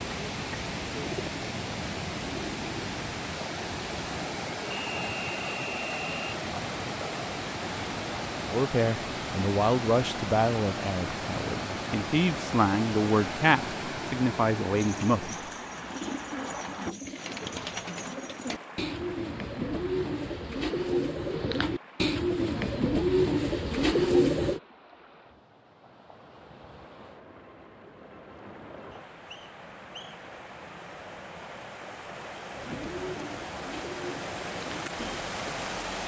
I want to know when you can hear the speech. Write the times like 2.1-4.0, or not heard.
8.4-15.3.